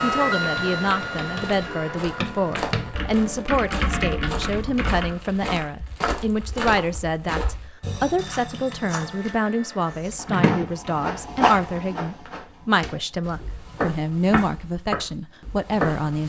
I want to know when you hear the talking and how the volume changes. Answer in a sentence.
The talking can be heard from 0.0 to 16.2 s, at a steady volume.